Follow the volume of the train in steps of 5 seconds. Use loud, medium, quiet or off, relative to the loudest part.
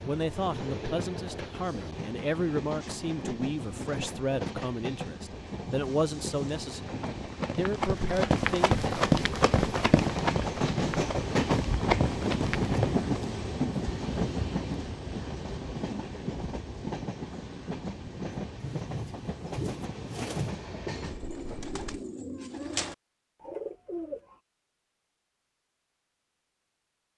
medium, medium, loud, medium, medium, off.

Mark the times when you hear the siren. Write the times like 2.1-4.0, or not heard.
not heard.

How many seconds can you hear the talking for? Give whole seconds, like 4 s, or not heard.
9 s.